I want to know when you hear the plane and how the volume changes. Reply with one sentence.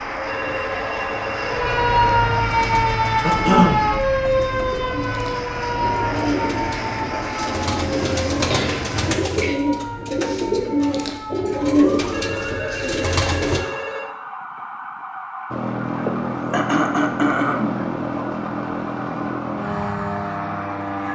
The plane can be heard from 0.0 to 9.2 s, getting quieter then louder; and from 15.5 to 21.1 s, at a steady volume.